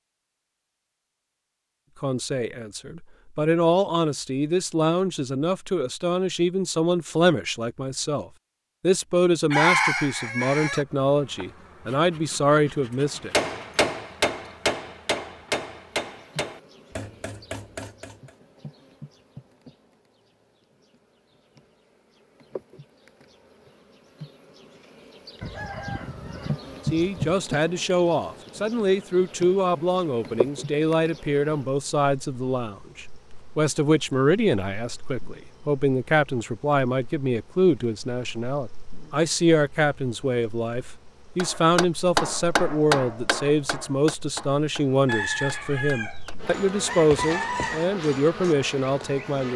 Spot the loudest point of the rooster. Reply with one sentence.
The volume of the rooster peaks at 10 seconds.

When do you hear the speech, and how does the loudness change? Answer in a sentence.
The speech can be heard from 2.0 to 13.3 s, at a steady volume; and from 26.9 to 49.5 s, at a steady volume.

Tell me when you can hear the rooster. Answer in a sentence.
You can hear the rooster from 9.5 to 10.8 s, from 25.4 to 27.2 s and from 45.0 to 48.0 s.